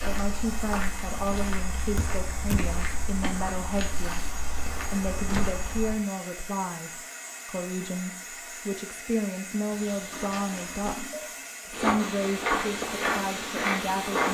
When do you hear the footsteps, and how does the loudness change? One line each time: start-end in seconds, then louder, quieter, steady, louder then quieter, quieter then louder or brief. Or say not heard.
0.0-6.0 steady
11.7-14.2 brief.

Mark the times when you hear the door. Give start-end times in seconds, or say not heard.
1.9-2.8, 5.2-5.7, 9.7-10.9.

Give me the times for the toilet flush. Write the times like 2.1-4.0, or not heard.
10.1-11.6.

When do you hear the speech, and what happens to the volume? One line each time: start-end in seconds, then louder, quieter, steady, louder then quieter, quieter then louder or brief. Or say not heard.
0.0-14.2 steady.